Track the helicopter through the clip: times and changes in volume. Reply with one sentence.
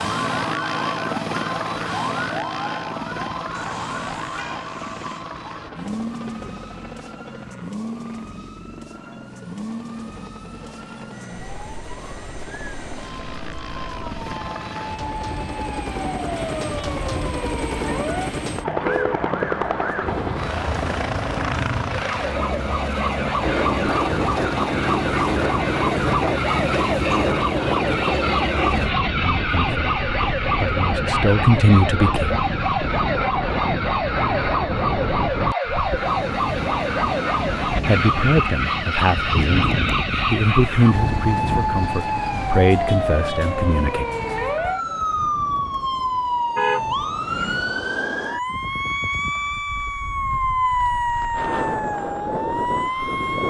You can hear the helicopter from 0.0 to 28.9 s, getting quieter then louder.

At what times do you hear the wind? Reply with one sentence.
You can hear the wind from 23.4 to 53.4 s.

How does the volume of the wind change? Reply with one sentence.
The loudness of the wind goes down.